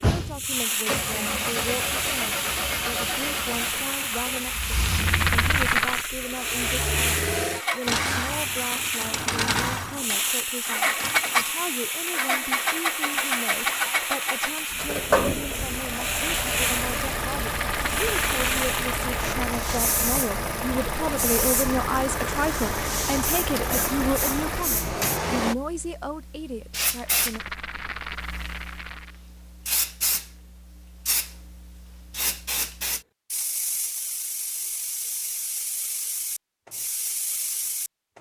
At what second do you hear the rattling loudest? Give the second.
6 s.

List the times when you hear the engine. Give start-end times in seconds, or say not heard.
0.0-25.6.